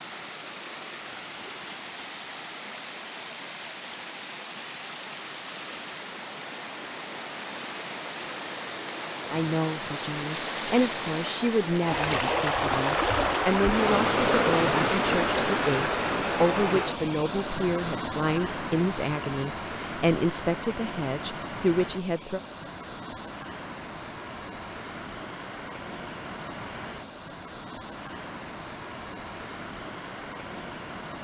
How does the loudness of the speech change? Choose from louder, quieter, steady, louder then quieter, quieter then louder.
steady.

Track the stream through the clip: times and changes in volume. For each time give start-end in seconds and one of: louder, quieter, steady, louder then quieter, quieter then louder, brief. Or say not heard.
0.0-31.1 louder then quieter.